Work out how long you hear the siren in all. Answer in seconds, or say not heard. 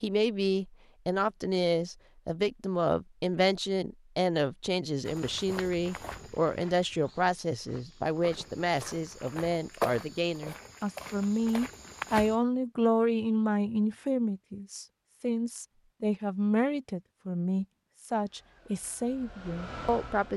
not heard.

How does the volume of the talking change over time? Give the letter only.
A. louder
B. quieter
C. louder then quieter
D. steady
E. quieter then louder
D.